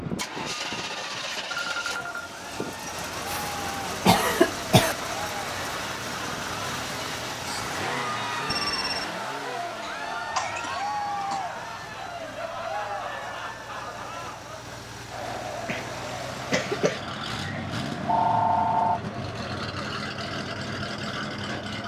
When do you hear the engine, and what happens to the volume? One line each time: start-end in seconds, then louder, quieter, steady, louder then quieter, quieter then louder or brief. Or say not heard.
0.0-21.8 quieter then louder.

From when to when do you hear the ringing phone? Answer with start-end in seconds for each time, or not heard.
1.5-2.4, 8.4-9.1, 18.1-19.0.